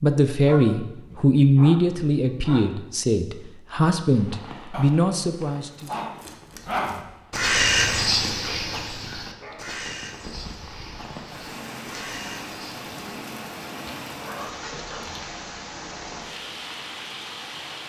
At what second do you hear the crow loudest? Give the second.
8 s.